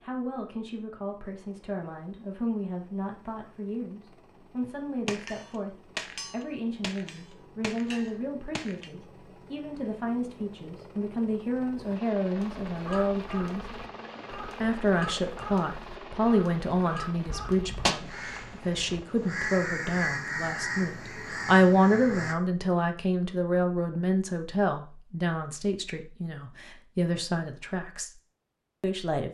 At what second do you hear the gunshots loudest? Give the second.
18 s.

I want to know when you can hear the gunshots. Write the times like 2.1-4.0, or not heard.
5.0-8.9, 17.2-19.0.